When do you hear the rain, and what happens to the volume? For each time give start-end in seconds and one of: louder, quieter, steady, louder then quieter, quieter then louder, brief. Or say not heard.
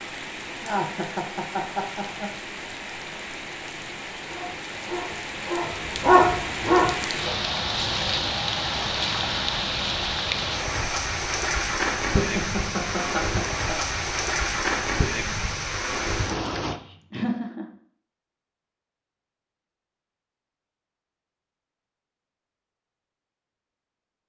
0.0-16.8 louder.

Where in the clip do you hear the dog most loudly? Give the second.
6 s.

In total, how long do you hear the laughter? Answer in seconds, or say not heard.
4 s.